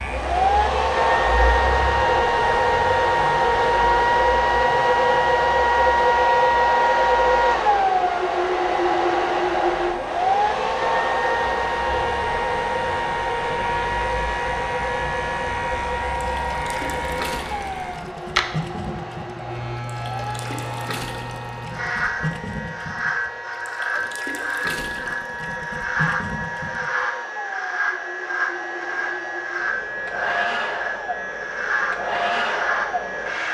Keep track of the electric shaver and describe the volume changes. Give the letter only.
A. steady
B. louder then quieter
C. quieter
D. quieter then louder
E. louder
E.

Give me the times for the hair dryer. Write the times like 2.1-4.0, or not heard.
0.0-33.5.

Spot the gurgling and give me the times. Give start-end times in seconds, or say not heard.
16.1-27.1.